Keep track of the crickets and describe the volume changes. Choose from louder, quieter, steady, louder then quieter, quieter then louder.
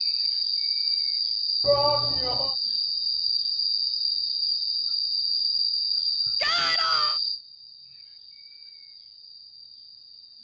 quieter.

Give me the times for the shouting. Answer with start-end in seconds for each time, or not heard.
1.6-2.5, 6.4-7.2.